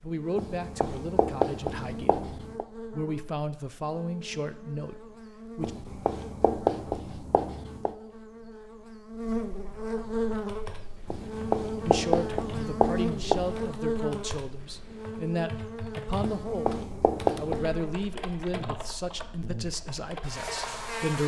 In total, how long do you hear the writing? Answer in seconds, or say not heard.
9 s.